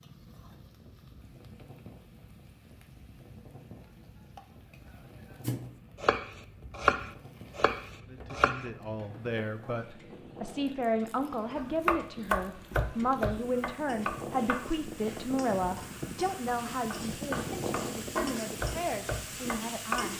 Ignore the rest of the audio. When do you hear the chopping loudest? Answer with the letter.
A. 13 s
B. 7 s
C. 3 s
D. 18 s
B.